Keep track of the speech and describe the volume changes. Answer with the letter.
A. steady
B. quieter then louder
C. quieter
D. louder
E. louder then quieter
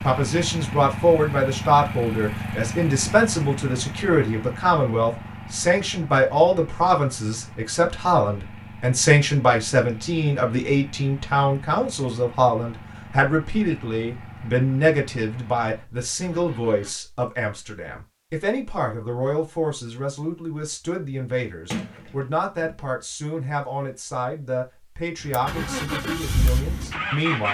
C.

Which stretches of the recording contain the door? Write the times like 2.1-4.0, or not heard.
21.7-22.9.